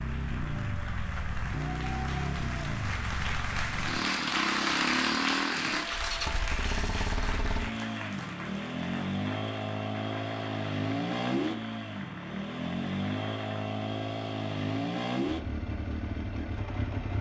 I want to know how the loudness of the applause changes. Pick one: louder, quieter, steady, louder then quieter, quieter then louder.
louder then quieter.